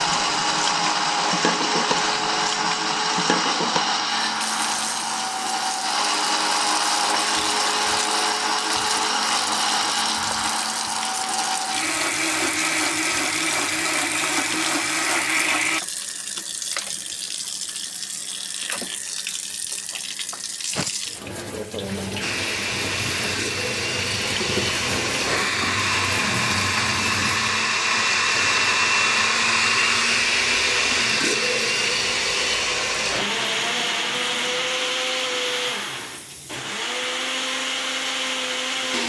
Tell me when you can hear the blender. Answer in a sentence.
The blender can be heard from 0.0 to 15.8 s and from 22.2 to 39.0 s.